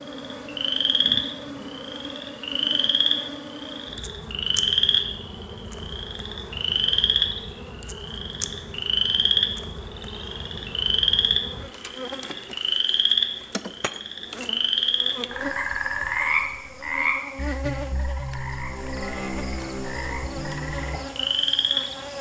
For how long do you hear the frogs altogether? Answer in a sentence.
You can hear the frogs for 22 seconds altogether.